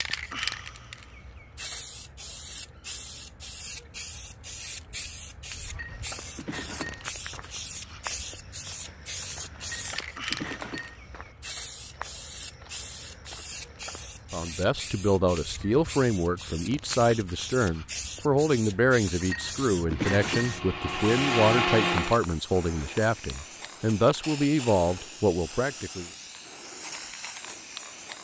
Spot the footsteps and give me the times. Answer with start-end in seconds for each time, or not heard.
5.8-14.5.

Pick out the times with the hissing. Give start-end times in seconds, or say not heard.
0.0-28.1.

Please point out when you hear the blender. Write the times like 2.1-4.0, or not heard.
19.9-22.2.